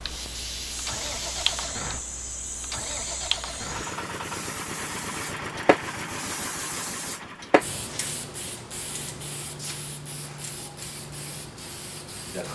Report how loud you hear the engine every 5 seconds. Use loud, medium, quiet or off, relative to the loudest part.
loud, loud, off.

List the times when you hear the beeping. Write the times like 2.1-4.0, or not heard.
not heard.